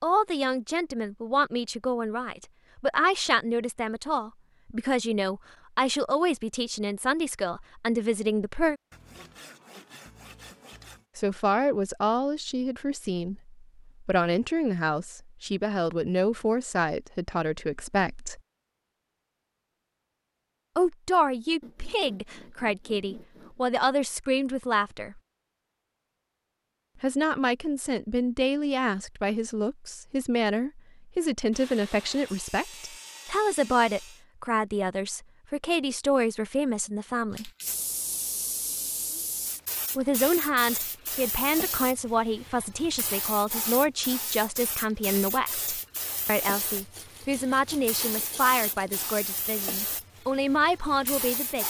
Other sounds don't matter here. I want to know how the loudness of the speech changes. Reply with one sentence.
The loudness of the speech stays about the same.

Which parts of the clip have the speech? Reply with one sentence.
The speech can be heard from 0.0 to 8.8 s, from 11.2 to 18.4 s, from 20.8 to 25.2 s, from 27.0 to 37.5 s and from 40.0 to 51.6 s.